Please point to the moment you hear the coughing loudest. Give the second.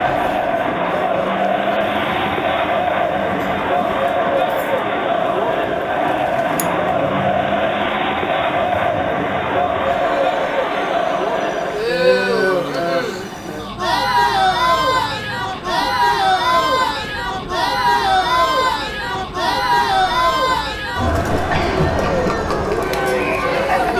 22 s.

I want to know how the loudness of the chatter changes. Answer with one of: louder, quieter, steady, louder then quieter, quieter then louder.
steady.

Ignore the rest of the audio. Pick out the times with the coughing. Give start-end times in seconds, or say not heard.
6.5-7.4, 21.3-22.4.